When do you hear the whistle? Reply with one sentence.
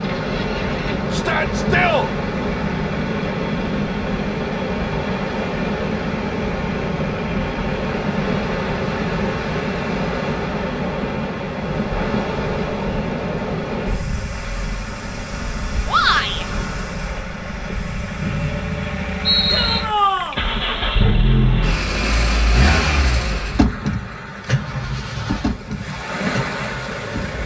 You can hear the whistle from 18.2 to 19.8 s.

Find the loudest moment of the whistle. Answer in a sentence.
The loudest moment of the whistle is at 19 seconds.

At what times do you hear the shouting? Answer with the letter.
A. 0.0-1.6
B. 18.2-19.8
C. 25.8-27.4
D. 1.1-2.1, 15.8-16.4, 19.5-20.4
D.